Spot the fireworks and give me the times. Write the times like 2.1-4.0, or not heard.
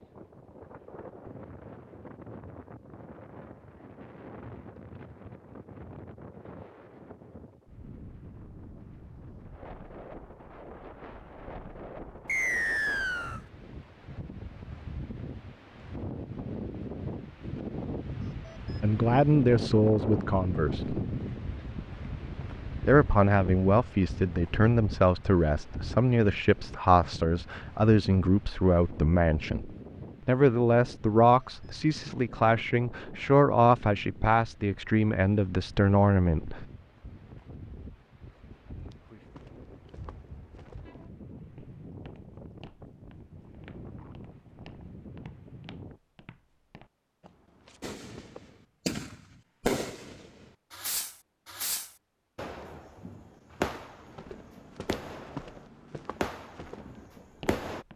47.8-57.9.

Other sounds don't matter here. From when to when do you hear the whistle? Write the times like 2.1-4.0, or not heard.
12.2-13.4.